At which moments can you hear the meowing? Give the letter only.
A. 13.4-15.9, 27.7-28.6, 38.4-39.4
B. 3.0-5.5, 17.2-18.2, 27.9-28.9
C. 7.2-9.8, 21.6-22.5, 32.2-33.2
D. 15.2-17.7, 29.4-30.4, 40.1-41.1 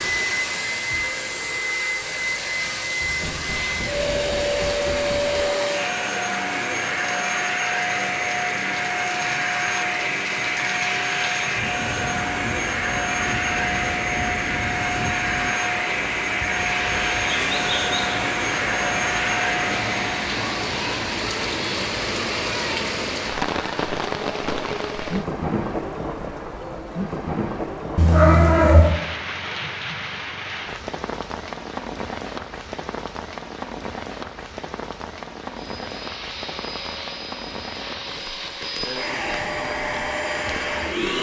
B.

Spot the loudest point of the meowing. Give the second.
28 s.